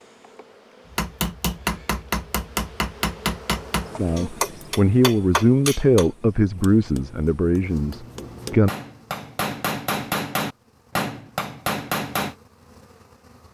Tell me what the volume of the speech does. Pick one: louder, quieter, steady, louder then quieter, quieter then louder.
quieter.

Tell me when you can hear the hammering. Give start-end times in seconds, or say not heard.
0.9-12.3.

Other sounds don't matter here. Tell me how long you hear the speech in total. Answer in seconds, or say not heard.
5 s.